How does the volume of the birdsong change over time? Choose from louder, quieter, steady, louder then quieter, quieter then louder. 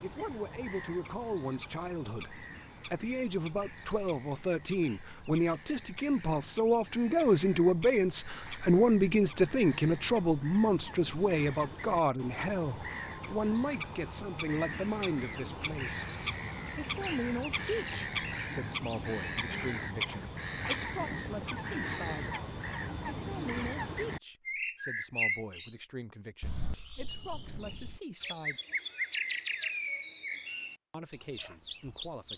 louder.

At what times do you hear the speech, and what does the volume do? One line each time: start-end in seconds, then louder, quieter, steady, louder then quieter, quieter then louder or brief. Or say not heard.
0.0-22.3 louder then quieter
23.1-28.6 quieter then louder
30.9-32.3 brief.